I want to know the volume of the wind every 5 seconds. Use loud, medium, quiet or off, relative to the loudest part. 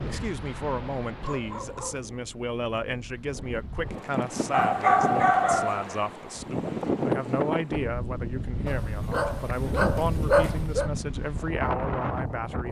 medium, loud, loud.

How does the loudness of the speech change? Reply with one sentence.
The loudness of the speech stays about the same.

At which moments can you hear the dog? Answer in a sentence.
The dog can be heard from 1.2 to 2.1 s, from 4.5 to 6.0 s and from 8.7 to 10.9 s.